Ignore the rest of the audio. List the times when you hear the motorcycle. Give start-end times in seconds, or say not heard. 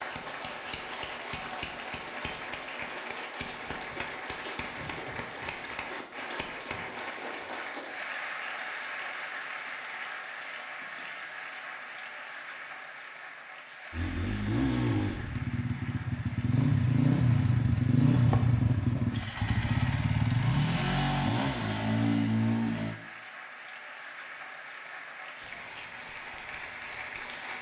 13.9-23.0.